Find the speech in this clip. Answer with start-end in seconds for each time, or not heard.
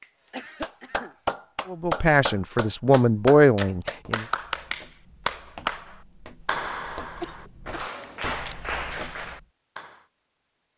1.6-4.2.